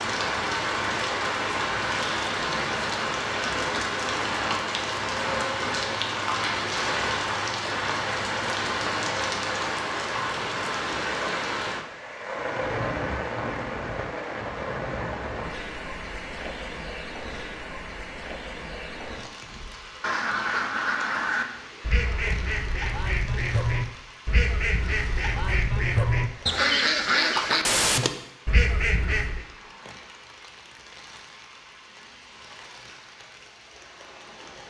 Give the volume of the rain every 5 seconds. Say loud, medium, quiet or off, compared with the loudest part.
loud, loud, loud, medium, quiet, quiet, quiet.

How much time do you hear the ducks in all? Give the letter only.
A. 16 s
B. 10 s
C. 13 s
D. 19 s
B.